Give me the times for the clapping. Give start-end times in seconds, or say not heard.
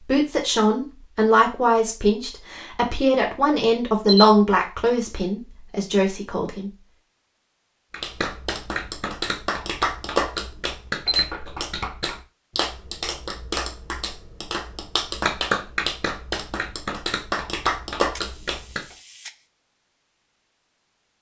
7.9-18.9.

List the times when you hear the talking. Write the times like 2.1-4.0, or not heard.
0.0-6.7.